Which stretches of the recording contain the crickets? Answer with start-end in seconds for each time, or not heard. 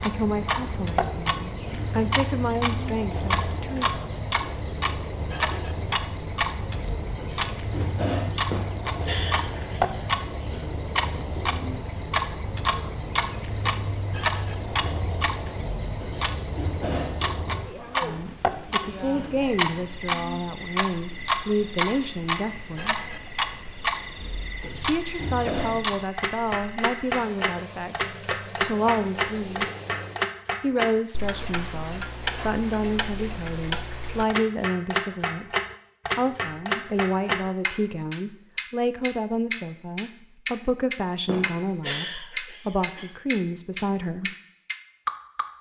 0.0-30.3.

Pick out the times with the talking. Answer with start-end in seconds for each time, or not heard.
0.0-3.9, 18.0-23.1, 24.9-29.6, 30.6-35.5, 36.1-44.3.